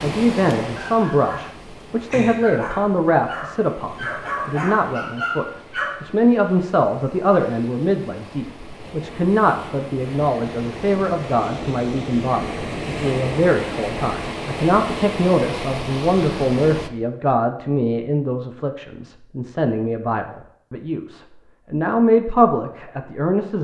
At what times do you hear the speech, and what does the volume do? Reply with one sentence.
The speech can be heard from 0.0 to 23.6 s, at a steady volume.